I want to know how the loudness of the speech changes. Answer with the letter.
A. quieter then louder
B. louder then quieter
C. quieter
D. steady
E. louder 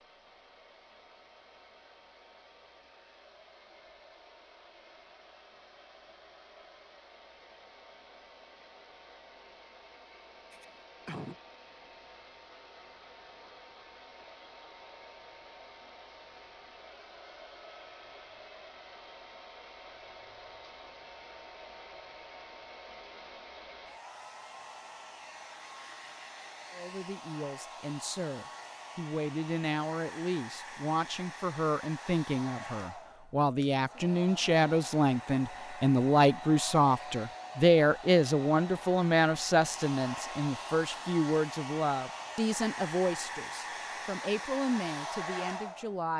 B.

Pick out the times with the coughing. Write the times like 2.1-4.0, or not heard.
10.5-11.3.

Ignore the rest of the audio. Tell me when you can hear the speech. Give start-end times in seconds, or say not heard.
26.7-46.1.